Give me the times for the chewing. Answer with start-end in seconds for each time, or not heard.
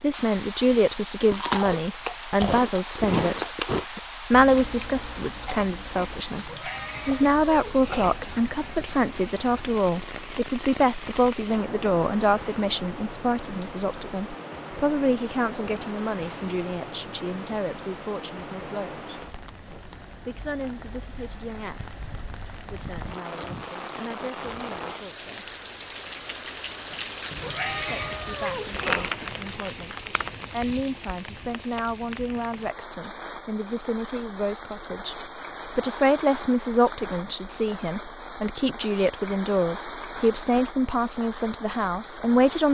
1.2-8.2.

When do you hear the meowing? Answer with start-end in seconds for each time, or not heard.
6.3-8.2, 27.3-29.3.